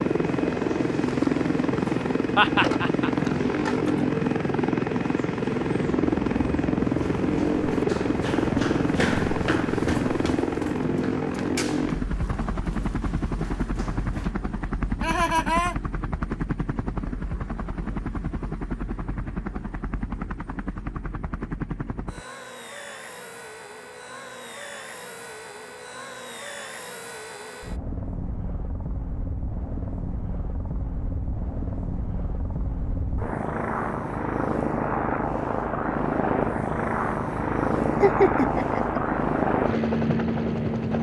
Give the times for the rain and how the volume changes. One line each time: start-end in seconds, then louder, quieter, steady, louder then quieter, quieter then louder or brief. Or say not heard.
not heard.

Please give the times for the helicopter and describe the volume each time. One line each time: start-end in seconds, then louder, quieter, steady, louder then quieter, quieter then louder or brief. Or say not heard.
0.0-40.9 quieter then louder.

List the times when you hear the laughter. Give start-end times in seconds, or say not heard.
2.4-3.1, 15.0-15.8, 38.0-39.0.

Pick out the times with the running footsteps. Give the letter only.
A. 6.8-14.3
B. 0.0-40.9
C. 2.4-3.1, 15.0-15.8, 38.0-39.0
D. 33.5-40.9
A.